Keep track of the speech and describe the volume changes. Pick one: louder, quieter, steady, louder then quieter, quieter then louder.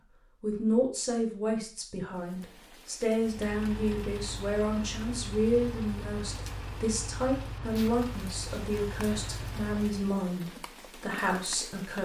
steady.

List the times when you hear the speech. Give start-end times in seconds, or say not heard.
0.4-12.0.